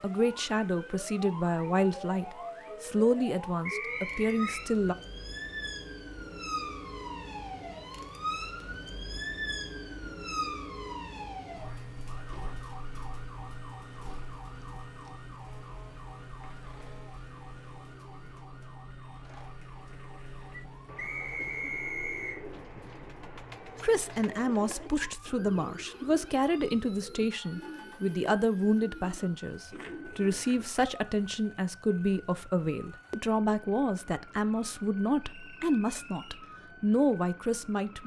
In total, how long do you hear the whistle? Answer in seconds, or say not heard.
4 s.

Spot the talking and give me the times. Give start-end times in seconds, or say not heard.
0.0-5.0, 23.6-38.0.